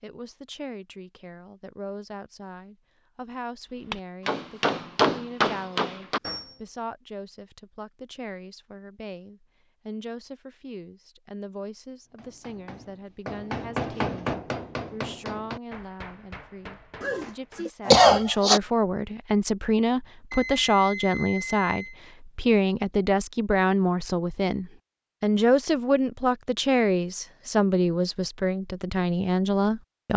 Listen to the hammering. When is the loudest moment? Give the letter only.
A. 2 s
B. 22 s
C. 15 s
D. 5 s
D.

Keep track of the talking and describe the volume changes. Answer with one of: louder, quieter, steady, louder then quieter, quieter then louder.
louder.